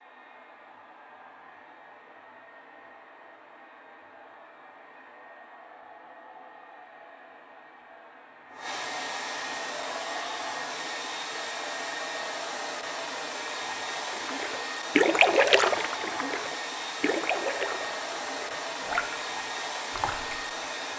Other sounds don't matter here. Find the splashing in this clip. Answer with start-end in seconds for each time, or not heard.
14.0-20.6.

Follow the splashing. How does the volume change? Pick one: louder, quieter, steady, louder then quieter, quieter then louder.
quieter.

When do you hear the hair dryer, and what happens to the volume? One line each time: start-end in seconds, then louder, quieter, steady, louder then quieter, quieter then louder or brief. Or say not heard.
0.0-20.9 louder.